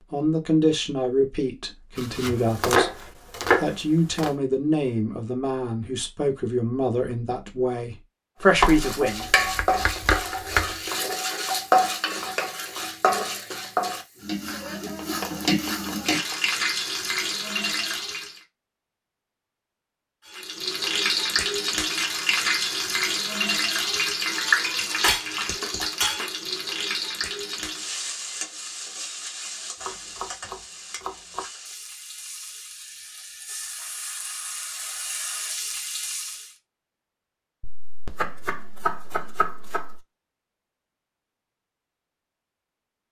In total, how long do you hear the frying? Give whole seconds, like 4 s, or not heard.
26 s.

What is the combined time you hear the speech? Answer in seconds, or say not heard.
9 s.